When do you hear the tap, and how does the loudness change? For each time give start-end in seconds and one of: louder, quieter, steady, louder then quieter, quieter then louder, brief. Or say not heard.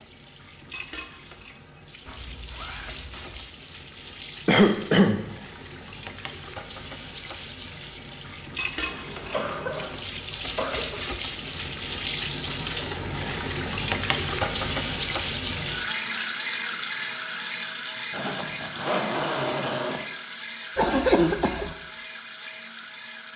0.0-23.3 louder then quieter.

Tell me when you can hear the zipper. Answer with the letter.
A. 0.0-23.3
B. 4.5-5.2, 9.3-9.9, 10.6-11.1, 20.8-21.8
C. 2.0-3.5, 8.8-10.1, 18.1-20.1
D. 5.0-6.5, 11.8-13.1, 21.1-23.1
C.